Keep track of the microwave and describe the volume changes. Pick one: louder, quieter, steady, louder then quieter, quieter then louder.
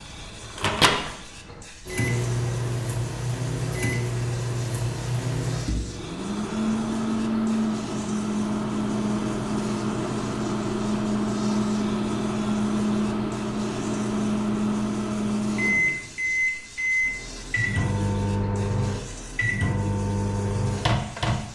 steady.